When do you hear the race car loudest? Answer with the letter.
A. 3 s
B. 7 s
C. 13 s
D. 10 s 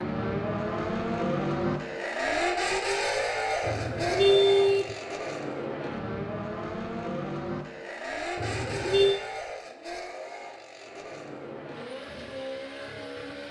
A.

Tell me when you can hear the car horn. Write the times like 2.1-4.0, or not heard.
3.6-5.0, 8.3-9.2.